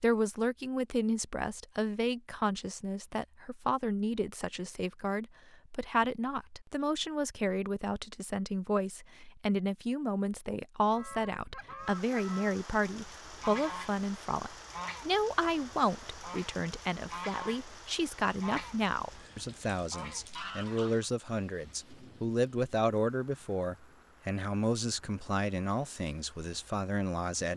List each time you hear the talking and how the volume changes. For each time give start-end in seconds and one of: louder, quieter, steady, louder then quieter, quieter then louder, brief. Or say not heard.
0.0-27.5 steady.